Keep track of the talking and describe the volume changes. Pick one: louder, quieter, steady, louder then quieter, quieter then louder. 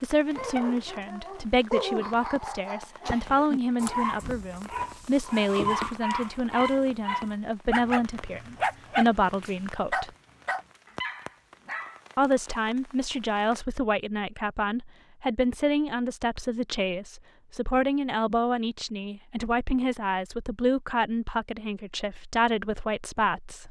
steady.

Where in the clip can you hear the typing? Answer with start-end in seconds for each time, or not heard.
not heard.